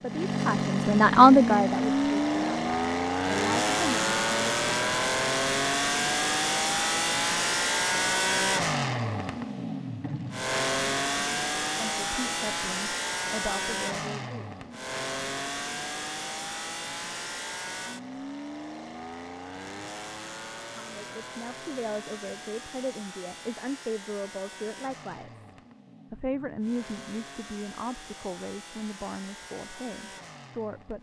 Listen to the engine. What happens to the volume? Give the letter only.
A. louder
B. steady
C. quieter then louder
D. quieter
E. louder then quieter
D.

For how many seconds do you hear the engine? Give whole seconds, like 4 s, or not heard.
31 s.